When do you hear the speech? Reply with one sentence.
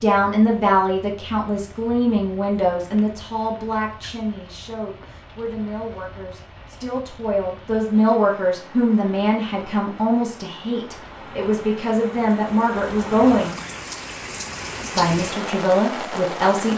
The speech can be heard from 0.0 to 13.6 s and from 14.9 to 16.7 s.